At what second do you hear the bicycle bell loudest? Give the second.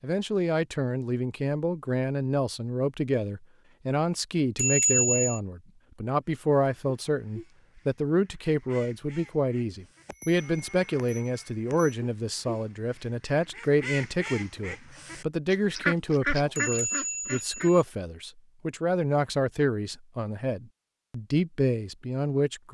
5 s.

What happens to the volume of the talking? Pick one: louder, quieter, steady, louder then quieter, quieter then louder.
steady.